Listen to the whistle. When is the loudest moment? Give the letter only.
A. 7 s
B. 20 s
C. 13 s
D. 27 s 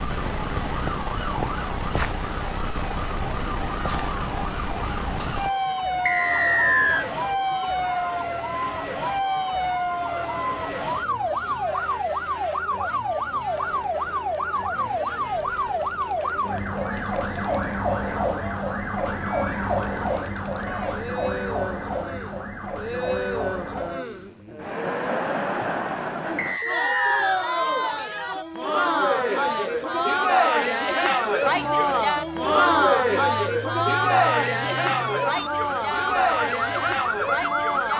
A.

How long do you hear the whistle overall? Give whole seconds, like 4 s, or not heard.
2 s.